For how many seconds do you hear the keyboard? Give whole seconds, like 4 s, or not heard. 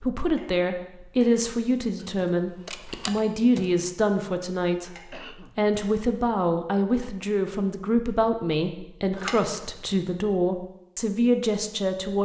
2 s.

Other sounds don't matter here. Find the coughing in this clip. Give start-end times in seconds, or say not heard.
5.1-5.6.